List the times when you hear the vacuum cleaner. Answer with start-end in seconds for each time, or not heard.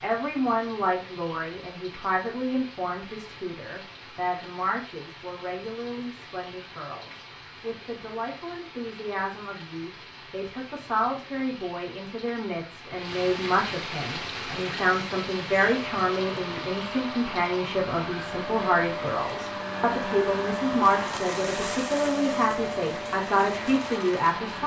14.2-24.6.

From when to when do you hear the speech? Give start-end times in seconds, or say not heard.
0.0-24.6.